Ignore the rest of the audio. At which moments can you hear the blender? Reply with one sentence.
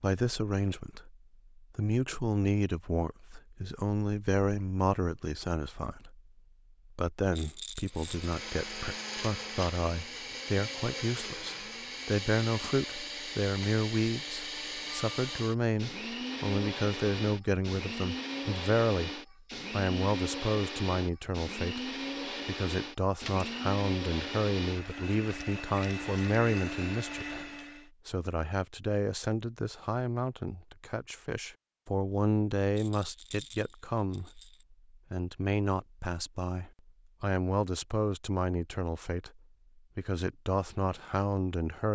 The blender can be heard from 7.9 to 27.9 s.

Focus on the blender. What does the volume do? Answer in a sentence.
The volume of the blender stays about the same.